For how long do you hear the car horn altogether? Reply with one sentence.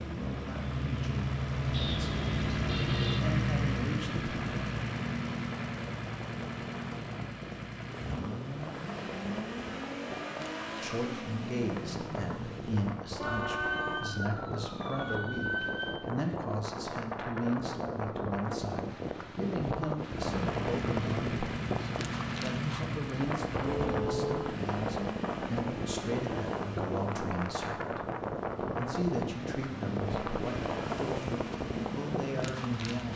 You can hear the car horn for 3 seconds altogether.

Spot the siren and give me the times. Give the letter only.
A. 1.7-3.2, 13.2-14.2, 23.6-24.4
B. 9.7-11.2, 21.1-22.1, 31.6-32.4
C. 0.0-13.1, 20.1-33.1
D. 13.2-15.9
D.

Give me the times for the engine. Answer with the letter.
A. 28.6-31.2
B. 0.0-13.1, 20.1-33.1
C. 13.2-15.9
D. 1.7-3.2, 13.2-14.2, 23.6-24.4
B.